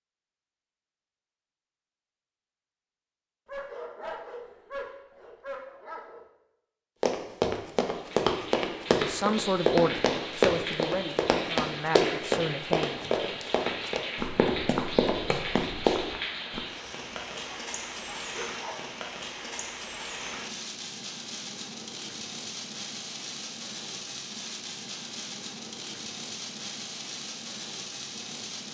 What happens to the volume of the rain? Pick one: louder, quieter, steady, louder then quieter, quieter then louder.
steady.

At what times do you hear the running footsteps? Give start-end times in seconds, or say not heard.
7.0-16.6.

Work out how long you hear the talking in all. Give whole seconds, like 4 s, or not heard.
4 s.